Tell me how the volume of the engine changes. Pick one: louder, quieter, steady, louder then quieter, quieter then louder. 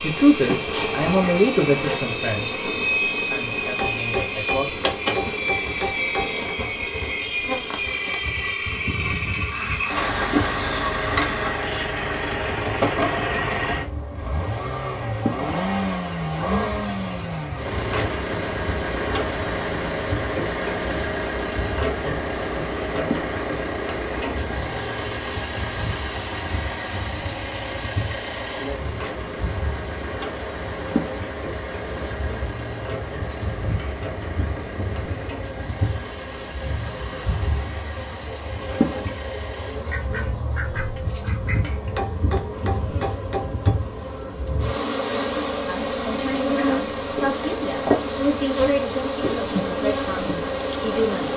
quieter.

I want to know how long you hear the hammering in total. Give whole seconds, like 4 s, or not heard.
5 s.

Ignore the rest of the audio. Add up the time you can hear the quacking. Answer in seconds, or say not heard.
4 s.